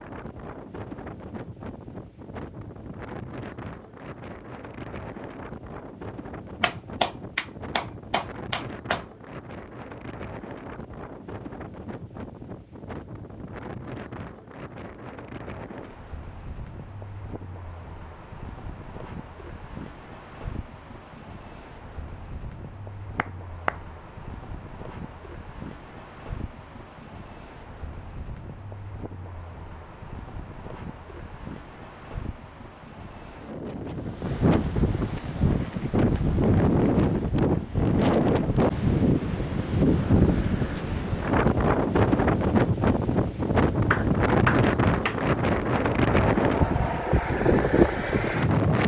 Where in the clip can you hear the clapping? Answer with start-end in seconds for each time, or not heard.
6.6-9.0, 23.1-23.8, 43.9-45.3.